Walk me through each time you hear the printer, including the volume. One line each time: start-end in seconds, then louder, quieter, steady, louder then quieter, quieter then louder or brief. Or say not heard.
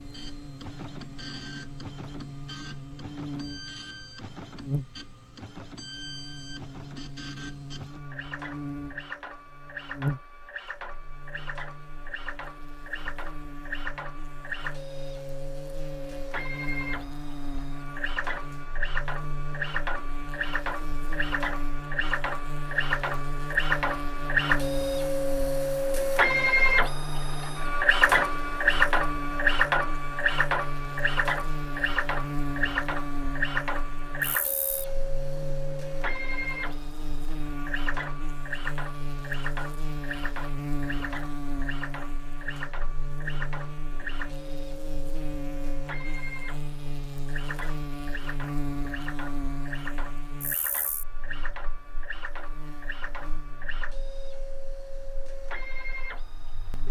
0.0-56.8 louder then quieter.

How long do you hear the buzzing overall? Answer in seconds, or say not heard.
57 s.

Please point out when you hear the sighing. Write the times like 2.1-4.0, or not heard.
not heard.